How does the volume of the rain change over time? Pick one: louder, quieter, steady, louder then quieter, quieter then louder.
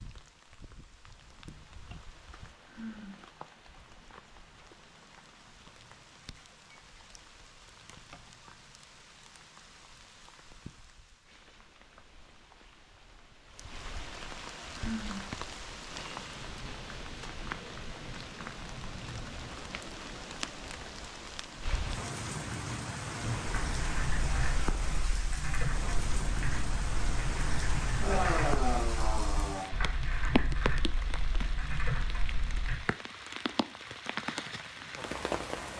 louder.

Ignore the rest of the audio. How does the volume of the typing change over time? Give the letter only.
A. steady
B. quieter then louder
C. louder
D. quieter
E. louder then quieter
A.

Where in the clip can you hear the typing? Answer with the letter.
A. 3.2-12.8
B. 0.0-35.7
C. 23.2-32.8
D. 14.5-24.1
C.